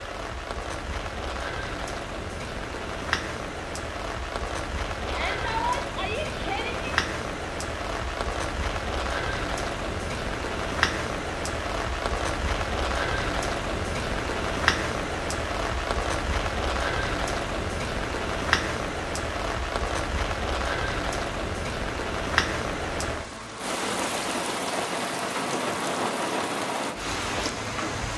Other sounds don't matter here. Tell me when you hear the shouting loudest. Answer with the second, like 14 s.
6 s.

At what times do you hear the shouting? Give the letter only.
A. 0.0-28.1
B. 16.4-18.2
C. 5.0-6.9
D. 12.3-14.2
C.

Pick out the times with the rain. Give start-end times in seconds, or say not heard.
0.0-28.1.